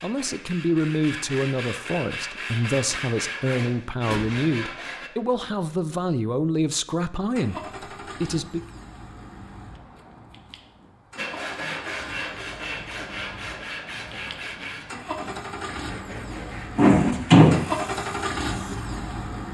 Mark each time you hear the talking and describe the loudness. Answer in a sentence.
The talking can be heard from 0.0 to 8.6 s, at a steady volume.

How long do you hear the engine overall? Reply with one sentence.
The engine can be heard for 12 seconds in total.